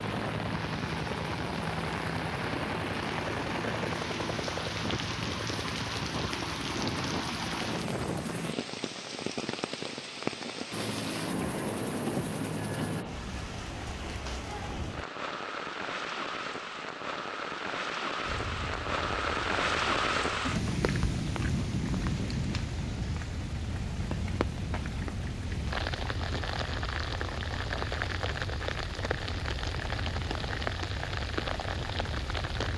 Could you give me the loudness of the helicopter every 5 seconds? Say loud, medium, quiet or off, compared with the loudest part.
loud, loud, loud, medium, medium, medium, medium.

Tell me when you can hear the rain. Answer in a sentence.
You can hear the rain from 0.0 to 32.7 s.